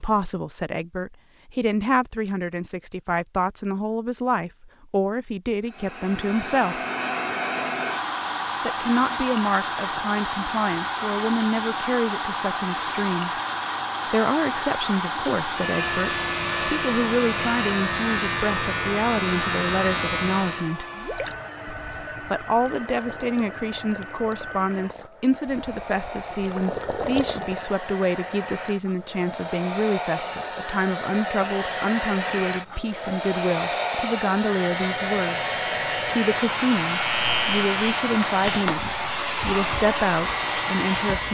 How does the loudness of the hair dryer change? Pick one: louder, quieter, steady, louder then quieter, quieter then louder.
quieter then louder.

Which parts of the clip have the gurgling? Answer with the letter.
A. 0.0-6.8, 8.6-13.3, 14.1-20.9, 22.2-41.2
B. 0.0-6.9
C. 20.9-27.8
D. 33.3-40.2
C.